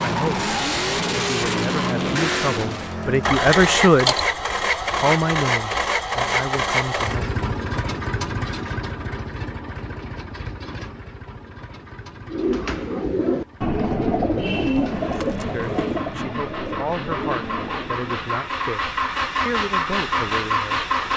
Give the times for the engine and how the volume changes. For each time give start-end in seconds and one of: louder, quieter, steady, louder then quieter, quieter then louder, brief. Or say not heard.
0.0-21.1 quieter then louder.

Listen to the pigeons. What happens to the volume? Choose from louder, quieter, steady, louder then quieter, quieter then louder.
quieter.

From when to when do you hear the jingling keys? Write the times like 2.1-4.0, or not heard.
3.5-4.2, 14.4-16.1.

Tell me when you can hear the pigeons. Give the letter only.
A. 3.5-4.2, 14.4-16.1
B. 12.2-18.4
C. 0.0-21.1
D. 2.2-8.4
B.